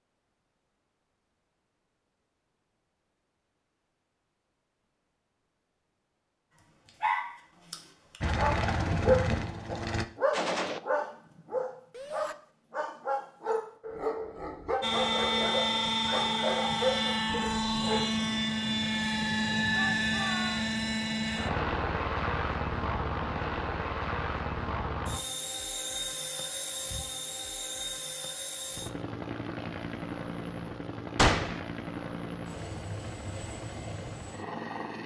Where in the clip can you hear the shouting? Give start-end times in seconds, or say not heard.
11.9-12.3, 19.8-20.6.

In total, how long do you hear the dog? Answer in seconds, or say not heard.
11 s.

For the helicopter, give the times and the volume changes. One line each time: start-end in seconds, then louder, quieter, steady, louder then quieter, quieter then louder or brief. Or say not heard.
8.2-10.1 brief
14.8-35.0 quieter.